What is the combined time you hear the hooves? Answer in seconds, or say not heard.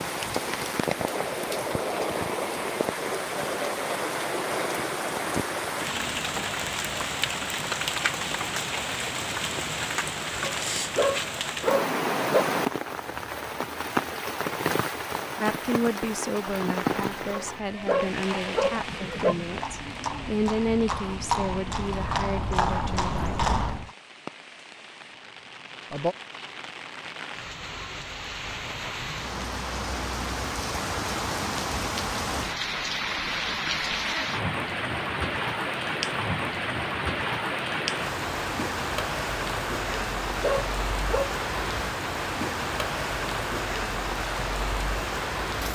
7 s.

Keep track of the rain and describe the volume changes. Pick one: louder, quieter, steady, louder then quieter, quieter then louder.
quieter then louder.